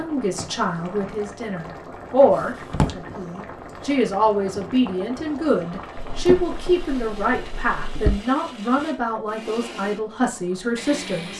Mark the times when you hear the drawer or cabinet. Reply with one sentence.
The drawer or cabinet can be heard from 2.3 to 3.0 s and from 6.1 to 8.2 s.